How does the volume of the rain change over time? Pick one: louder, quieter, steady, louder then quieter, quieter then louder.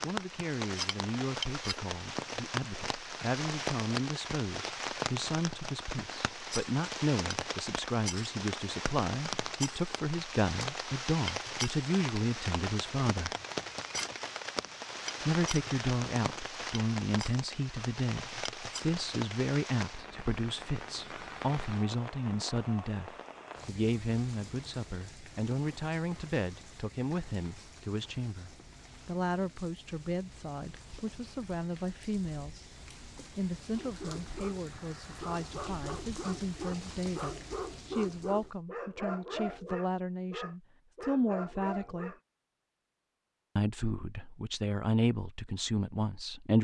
quieter.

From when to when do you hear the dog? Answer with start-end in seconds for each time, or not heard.
33.8-42.2.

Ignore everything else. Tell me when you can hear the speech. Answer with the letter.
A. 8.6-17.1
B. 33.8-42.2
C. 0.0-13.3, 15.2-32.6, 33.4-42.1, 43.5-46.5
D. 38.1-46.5
C.